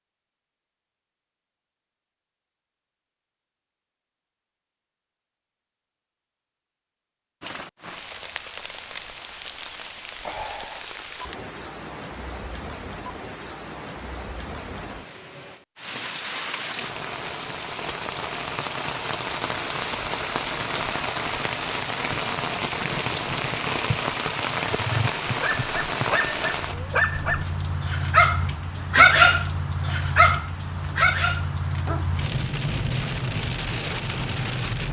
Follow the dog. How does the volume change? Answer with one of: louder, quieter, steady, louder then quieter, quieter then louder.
louder then quieter.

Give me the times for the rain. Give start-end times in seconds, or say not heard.
7.4-34.8.